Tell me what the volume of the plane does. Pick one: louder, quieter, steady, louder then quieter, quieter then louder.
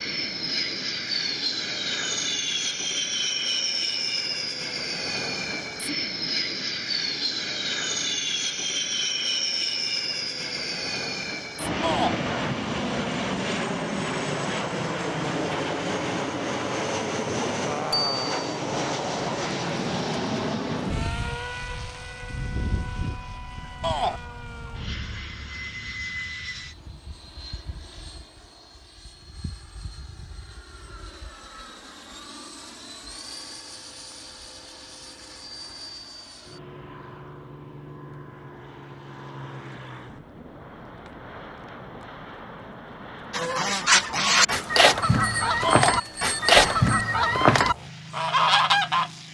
quieter.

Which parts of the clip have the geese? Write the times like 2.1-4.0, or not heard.
43.3-49.1.